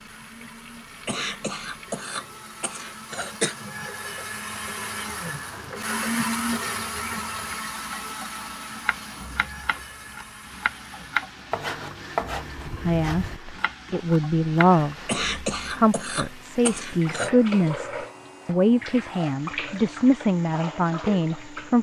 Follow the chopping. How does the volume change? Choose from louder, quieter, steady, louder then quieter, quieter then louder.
louder then quieter.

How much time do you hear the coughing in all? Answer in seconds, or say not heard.
5 s.